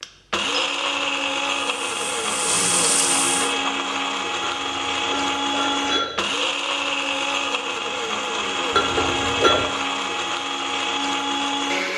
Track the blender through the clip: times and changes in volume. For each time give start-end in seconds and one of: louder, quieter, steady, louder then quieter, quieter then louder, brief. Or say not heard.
0.0-11.9 steady.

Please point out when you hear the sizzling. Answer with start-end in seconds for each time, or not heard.
1.6-3.5.